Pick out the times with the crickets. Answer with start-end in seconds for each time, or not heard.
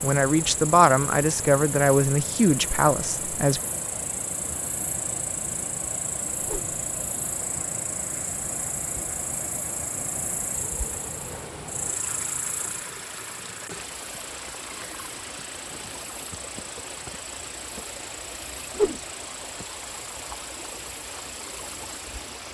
0.0-22.4.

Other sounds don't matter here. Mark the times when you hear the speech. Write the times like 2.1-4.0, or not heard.
0.0-3.6.